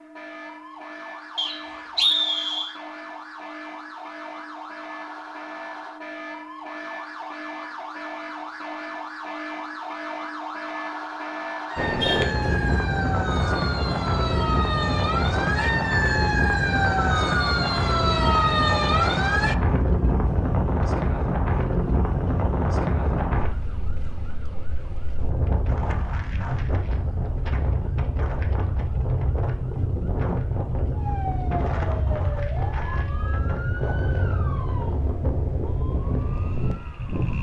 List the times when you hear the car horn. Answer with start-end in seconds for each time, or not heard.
12.0-12.8.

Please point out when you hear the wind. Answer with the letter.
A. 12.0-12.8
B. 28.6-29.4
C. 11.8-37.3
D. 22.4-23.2
C.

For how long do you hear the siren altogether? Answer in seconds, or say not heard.
37 s.